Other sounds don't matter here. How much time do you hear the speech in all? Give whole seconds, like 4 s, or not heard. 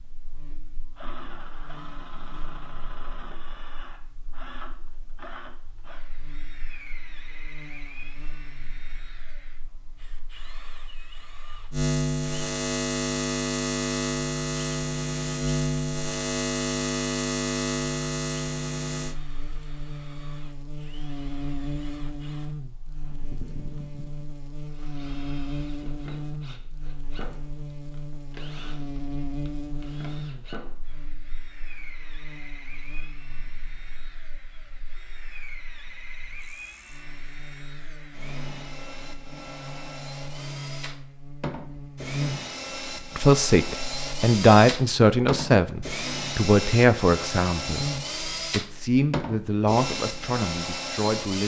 8 s.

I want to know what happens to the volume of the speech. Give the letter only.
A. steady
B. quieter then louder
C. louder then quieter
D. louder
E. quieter
E.